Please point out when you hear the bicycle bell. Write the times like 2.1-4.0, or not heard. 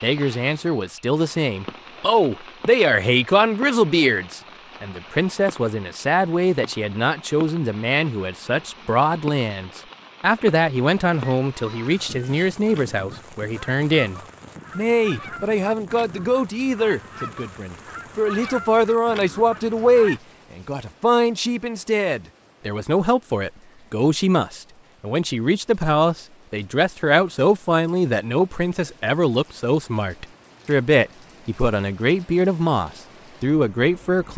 not heard.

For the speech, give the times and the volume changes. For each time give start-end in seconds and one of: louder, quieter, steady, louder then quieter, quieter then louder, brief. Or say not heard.
0.0-34.3 steady.